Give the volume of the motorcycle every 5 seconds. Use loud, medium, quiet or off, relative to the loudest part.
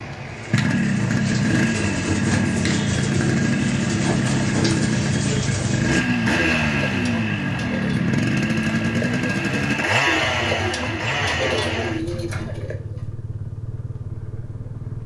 loud, loud, medium.